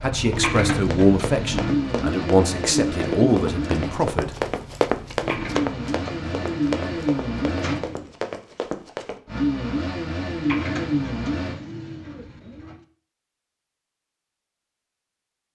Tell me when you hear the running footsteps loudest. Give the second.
5 s.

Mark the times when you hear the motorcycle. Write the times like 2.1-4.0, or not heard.
0.0-7.8, 9.2-11.6.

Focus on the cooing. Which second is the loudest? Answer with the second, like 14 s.
1 s.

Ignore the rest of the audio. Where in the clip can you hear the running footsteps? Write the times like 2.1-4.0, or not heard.
0.3-9.2.